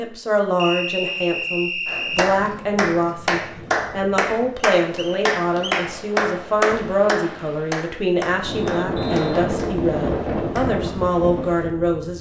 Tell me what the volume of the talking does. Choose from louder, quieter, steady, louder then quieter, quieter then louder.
steady.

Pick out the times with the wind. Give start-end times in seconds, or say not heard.
2.2-12.1.